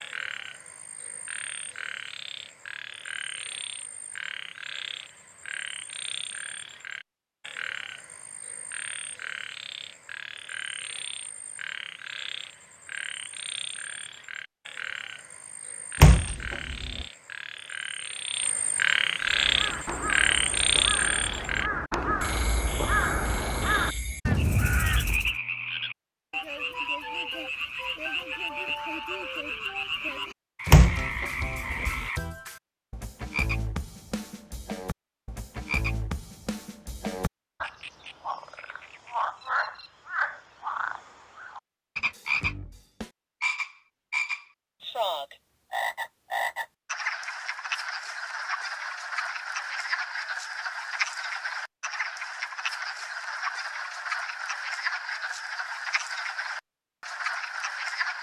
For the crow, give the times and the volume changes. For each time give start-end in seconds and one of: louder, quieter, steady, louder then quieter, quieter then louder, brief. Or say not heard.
19.2-25.4 louder.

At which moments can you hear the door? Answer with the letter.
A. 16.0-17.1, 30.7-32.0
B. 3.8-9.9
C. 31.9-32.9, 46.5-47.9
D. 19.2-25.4
A.